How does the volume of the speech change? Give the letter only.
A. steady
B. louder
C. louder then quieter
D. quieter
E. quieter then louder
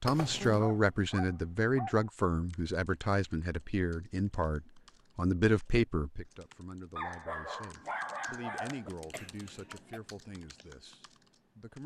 D.